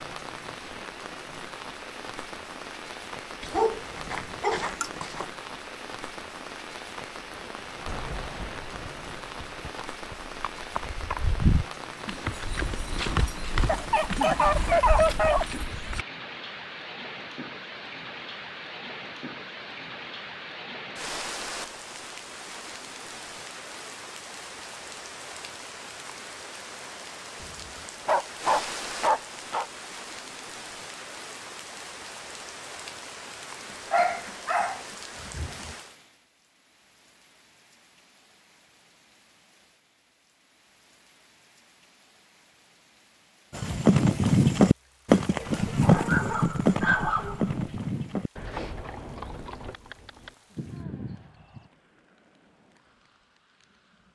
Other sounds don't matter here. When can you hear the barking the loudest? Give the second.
15 s.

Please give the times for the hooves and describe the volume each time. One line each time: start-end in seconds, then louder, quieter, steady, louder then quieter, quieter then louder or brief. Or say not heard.
7.8-16.1 louder then quieter
43.5-51.7 quieter.